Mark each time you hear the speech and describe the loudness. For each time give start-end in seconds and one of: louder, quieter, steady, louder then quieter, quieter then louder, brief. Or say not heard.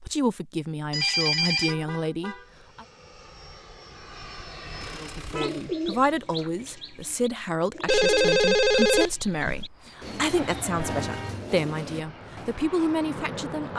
0.0-2.9 brief
5.0-13.7 steady.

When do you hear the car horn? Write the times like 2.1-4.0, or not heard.
1.5-2.5, 4.8-5.7, 10.8-11.4.